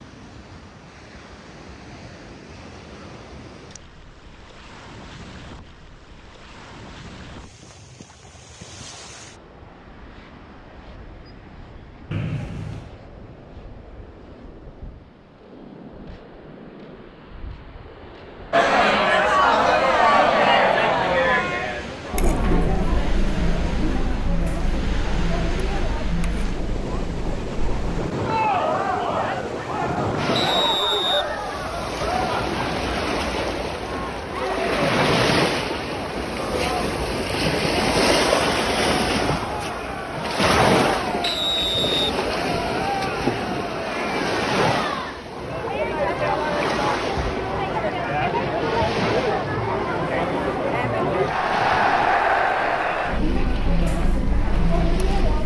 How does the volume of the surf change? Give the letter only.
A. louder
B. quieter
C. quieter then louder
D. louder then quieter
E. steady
D.